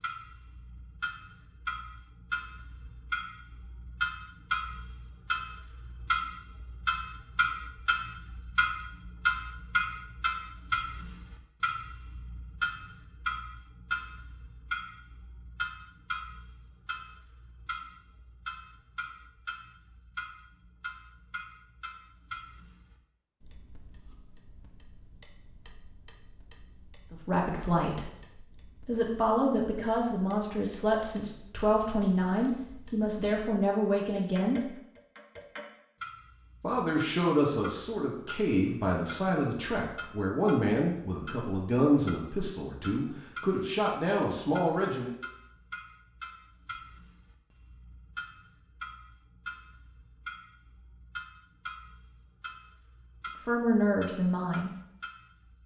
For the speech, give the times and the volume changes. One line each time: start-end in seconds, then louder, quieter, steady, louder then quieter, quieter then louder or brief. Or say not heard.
27.1-28.1 brief
28.9-34.7 steady
36.6-45.1 steady
53.5-54.7 brief.